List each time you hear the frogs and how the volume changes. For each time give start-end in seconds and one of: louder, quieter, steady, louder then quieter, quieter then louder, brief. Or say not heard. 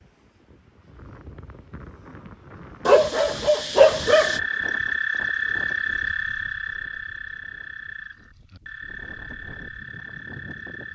4.0-10.9 quieter.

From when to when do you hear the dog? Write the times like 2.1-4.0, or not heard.
2.9-4.4.